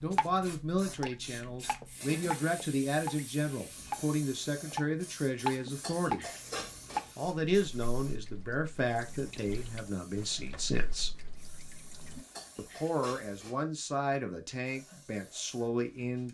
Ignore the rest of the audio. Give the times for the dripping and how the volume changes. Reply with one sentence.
The dripping can be heard from 0.0 to 12.2 s, getting louder then quieter.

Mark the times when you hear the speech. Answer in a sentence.
You can hear the speech from 0.0 to 6.2 s, from 7.2 to 11.1 s and from 12.6 to 16.2 s.